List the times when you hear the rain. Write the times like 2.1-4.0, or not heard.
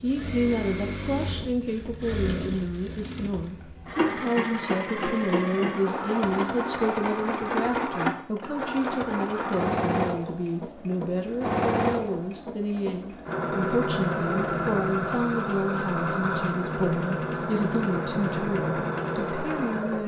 not heard.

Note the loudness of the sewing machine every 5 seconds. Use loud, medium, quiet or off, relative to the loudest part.
medium, loud, loud, loud.